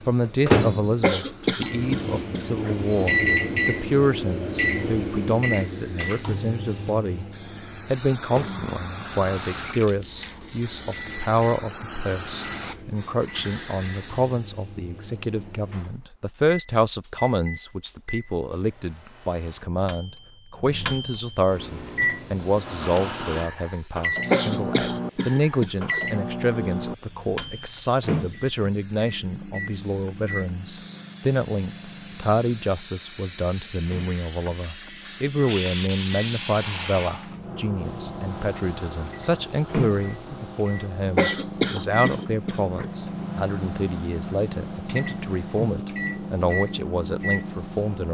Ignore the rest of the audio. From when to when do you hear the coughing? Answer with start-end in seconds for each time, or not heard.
1.0-2.8, 24.3-26.0, 41.1-42.9.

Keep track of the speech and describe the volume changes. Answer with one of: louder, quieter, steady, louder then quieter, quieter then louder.
steady.